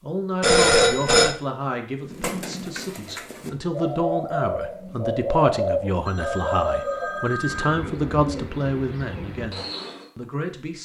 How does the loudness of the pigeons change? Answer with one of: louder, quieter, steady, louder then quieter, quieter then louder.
louder then quieter.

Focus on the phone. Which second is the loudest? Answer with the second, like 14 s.
1 s.